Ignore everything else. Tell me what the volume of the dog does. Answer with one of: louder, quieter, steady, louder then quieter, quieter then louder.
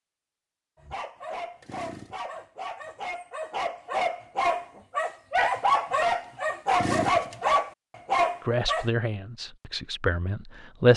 louder.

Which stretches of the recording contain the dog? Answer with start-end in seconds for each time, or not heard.
0.8-8.9.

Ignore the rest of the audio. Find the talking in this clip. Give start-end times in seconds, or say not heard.
8.4-10.9.